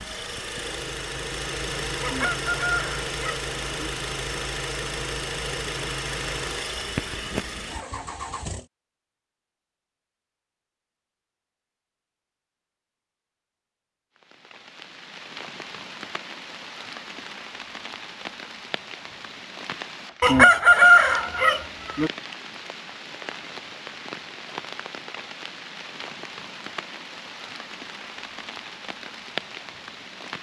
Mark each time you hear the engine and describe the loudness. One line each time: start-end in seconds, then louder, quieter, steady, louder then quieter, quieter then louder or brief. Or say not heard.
0.0-8.7 steady.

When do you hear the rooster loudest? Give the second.
21 s.